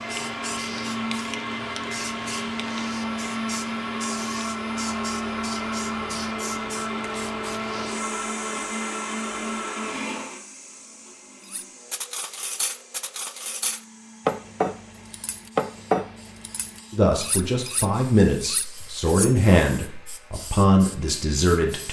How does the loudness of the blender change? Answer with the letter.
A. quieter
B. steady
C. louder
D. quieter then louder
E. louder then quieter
A.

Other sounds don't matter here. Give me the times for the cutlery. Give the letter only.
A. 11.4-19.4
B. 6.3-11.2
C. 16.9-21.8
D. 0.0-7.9
A.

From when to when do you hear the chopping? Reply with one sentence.
You can't hear the chopping here.